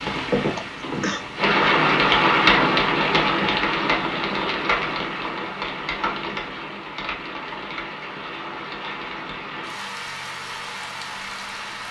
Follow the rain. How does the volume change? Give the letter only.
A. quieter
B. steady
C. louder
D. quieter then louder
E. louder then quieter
A.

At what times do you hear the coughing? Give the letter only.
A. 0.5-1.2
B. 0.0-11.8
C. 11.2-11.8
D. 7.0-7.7
A.